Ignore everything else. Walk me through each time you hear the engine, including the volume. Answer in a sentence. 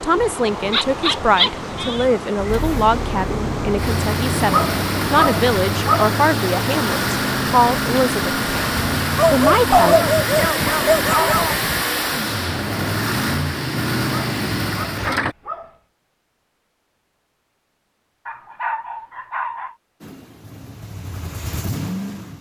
The engine can be heard from 2.5 to 15.3 s, at a steady volume; and briefly from 20.0 to 22.3 s.